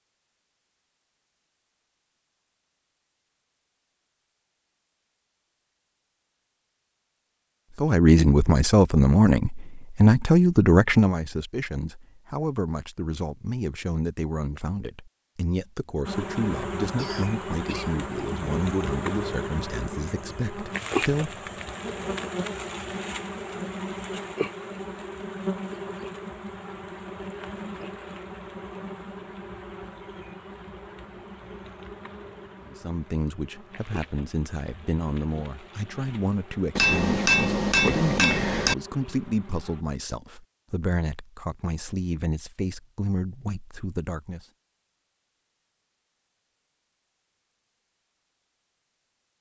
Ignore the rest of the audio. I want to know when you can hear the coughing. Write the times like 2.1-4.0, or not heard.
16.9-17.9.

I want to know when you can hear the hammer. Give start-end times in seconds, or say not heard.
36.8-38.8.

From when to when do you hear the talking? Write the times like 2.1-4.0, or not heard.
7.8-21.4, 32.6-44.5.